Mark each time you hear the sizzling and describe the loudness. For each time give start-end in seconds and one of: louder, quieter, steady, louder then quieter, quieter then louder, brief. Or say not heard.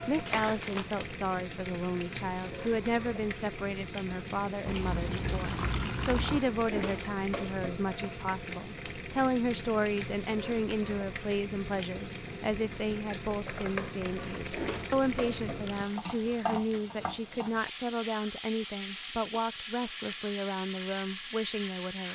0.0-22.0 steady.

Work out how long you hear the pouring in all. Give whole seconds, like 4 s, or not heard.
4 s.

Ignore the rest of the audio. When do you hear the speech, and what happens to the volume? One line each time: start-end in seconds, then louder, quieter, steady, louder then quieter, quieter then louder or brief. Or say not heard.
0.1-22.0 steady.